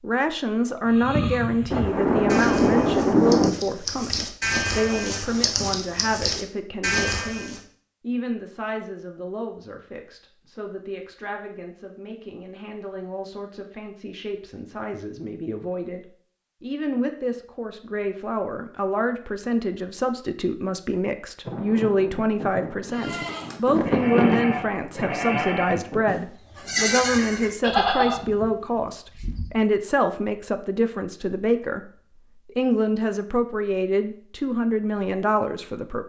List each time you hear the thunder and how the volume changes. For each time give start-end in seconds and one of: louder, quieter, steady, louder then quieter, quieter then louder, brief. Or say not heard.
1.7-3.5 brief
21.4-26.2 louder then quieter.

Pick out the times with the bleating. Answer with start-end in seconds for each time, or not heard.
0.8-7.6, 22.9-29.6.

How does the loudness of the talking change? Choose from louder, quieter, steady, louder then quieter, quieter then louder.
quieter then louder.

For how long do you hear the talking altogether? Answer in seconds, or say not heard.
36 s.